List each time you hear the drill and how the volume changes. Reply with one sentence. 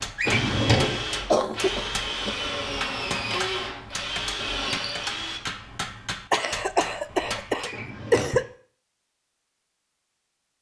The drill can be heard from 0.0 to 5.4 s, at a steady volume.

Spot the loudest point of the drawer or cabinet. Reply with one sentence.
The volume of the drawer or cabinet peaks at 1 second.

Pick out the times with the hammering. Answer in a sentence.
The hammering can be heard from 0.0 to 7.8 s.